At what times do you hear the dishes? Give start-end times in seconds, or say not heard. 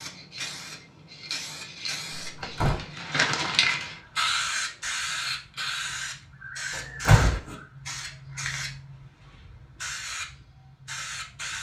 not heard.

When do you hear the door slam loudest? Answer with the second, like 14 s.
7 s.